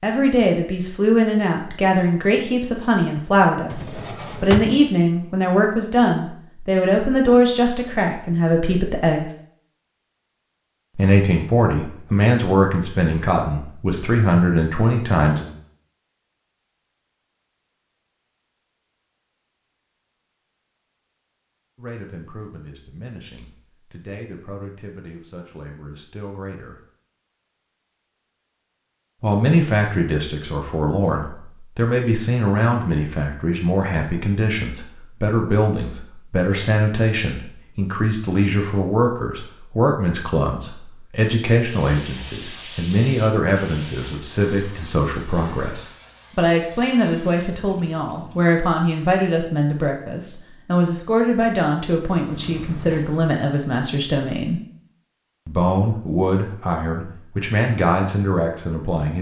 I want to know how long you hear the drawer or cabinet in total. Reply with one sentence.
The drawer or cabinet can be heard for 2 seconds in total.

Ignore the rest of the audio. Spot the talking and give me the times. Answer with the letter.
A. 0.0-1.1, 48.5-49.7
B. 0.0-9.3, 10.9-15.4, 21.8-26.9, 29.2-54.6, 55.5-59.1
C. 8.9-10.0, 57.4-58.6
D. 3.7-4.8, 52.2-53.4
B.